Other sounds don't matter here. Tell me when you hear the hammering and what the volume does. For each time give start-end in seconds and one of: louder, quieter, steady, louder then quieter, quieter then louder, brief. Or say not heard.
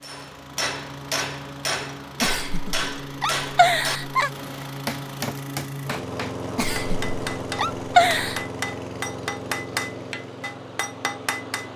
0.0-11.7 steady.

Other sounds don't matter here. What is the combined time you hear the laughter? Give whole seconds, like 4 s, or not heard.
4 s.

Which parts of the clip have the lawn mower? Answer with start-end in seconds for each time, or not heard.
0.0-11.7.